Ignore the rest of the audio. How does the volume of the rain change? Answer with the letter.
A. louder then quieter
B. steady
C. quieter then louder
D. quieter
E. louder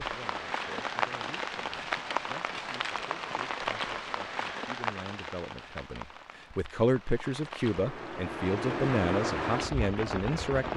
C.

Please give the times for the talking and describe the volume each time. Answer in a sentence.
You can hear the talking from 0.0 to 10.7 s, getting louder.